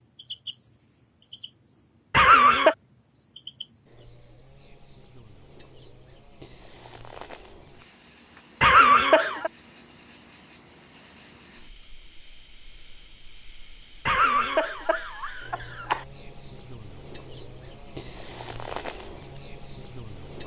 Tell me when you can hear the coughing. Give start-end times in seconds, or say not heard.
2.1-2.8, 8.6-9.5, 14.1-16.1.